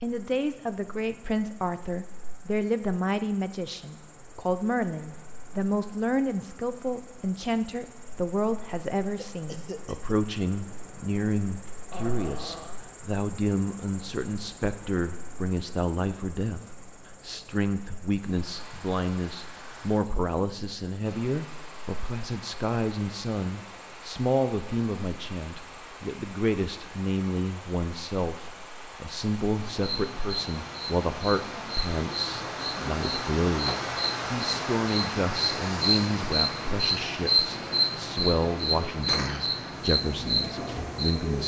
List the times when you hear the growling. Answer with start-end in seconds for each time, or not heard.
11.9-12.8.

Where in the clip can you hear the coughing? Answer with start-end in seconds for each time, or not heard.
9.2-10.2, 38.9-39.5.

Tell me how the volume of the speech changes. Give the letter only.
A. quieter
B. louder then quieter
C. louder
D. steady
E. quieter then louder
D.